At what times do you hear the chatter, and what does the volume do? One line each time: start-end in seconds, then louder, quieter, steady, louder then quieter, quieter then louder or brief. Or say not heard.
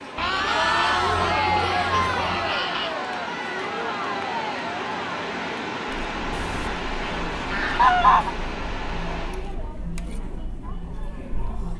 0.0-11.7 quieter.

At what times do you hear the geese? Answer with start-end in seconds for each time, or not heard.
0.1-3.0, 6.3-8.3.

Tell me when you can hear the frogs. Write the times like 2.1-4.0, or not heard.
not heard.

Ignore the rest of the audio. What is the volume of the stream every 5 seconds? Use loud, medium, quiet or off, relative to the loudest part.
loud, loud, off.